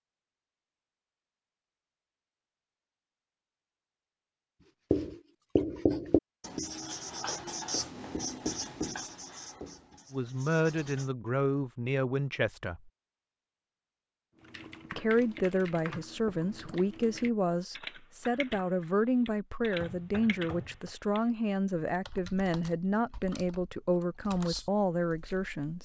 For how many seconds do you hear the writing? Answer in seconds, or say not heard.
6 s.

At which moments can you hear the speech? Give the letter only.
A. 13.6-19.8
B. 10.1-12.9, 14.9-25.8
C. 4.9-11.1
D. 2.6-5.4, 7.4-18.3
B.